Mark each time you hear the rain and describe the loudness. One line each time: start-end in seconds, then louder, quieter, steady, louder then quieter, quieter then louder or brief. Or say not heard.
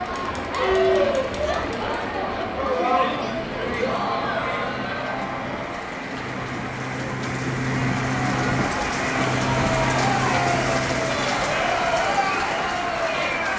0.0-13.5 louder.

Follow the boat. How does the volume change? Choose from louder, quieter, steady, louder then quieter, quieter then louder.
louder.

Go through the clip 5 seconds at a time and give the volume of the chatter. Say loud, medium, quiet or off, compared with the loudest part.
loud, medium, loud.